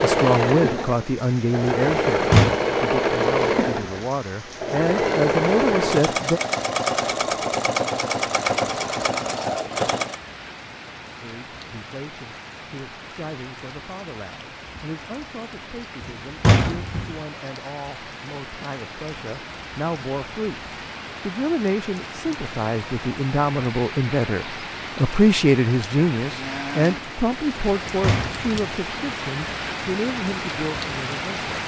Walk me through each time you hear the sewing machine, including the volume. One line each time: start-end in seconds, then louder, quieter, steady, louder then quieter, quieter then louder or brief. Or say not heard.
0.0-10.2 steady.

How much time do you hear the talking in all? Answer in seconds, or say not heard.
26 s.